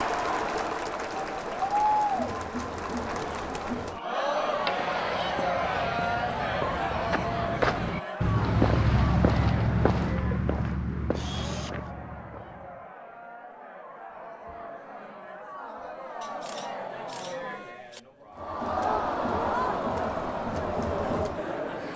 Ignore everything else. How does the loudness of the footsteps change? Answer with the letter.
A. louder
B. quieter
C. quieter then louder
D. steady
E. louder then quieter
E.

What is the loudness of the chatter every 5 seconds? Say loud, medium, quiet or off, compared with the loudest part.
loud, loud, quiet, loud, loud.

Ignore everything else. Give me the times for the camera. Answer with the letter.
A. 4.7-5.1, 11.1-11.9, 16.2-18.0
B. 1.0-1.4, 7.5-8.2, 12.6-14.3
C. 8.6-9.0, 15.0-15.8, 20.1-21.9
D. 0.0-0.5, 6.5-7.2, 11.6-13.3
A.